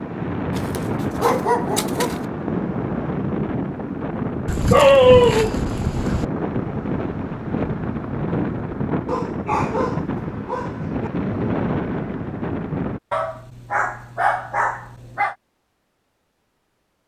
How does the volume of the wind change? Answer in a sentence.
The loudness of the wind stays about the same.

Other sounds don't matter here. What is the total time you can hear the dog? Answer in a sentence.
You can hear the dog for 8 seconds altogether.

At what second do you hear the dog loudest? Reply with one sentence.
The loudest moment of the dog is at 5 seconds.